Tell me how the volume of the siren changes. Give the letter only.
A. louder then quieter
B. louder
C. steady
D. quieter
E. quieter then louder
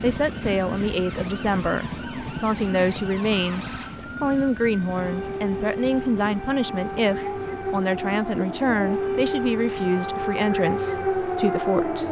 B.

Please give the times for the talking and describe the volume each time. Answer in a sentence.
You can hear the talking from 0.0 to 12.0 s, at a steady volume.